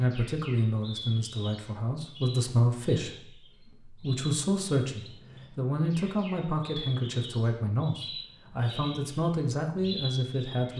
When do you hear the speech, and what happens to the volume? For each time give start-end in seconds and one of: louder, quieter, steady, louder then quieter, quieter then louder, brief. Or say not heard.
0.0-10.7 steady.